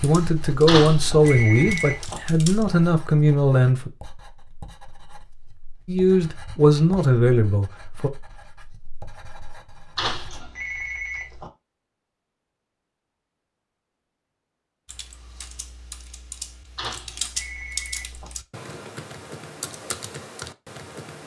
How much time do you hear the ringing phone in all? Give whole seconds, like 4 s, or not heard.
5 s.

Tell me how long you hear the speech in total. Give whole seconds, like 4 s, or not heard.
6 s.